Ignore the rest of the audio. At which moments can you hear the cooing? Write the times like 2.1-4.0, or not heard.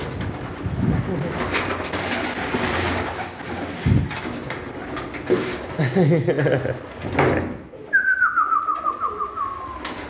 0.0-10.0.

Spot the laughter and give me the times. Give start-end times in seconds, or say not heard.
0.9-1.6, 5.8-7.5.